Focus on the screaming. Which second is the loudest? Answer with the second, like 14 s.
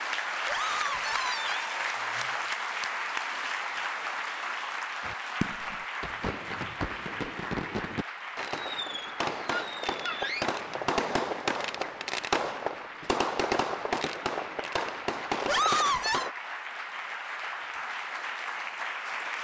16 s.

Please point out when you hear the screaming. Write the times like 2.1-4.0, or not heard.
0.5-1.7, 9.5-10.4, 15.4-16.3.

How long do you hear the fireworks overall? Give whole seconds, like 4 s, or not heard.
11 s.